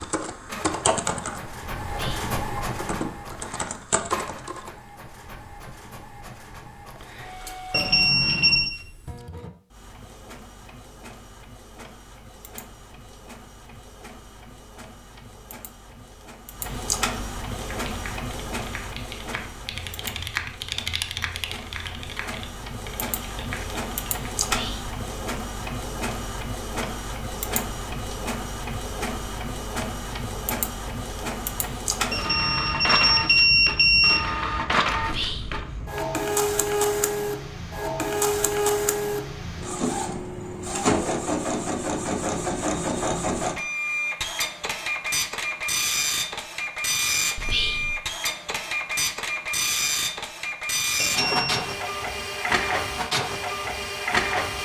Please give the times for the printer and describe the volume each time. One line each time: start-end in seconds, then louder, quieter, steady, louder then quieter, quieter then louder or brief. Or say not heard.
0.2-54.5 louder.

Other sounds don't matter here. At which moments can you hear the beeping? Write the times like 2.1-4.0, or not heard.
7.7-8.7, 32.1-34.2, 51.0-51.8.